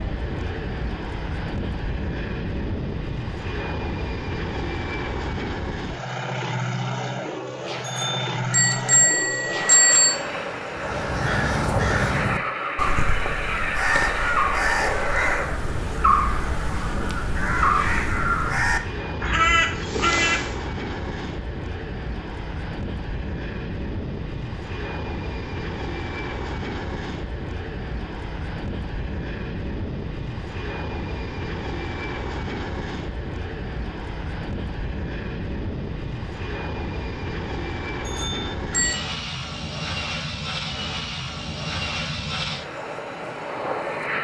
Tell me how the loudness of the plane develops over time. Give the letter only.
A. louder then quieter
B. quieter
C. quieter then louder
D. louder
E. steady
E.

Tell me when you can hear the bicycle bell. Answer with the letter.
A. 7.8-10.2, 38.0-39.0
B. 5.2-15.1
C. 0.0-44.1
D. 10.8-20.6
A.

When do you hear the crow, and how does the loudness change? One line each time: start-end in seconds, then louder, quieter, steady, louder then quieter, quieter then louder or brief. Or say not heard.
10.8-20.6 steady.